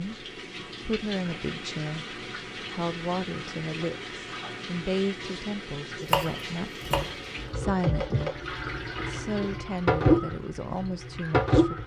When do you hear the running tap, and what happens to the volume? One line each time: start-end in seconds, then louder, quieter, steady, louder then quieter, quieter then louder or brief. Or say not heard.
0.0-11.8 louder.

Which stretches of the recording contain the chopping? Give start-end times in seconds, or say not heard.
6.0-7.2.